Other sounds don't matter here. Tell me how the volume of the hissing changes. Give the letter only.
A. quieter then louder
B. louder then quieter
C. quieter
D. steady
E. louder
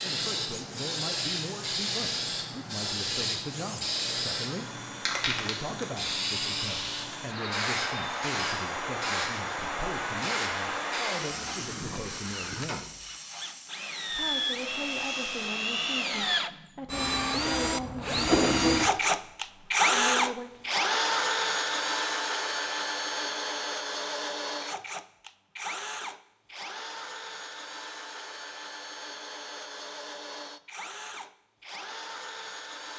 C.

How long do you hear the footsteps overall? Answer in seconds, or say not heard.
not heard.